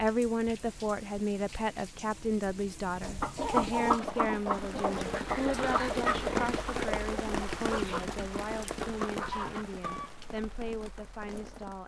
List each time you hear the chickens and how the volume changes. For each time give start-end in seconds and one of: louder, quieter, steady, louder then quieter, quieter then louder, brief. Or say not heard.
3.0-10.6 quieter.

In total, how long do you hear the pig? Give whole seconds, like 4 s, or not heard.
2 s.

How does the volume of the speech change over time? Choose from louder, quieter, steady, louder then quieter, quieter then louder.
quieter.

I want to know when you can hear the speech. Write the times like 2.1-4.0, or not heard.
0.0-11.8.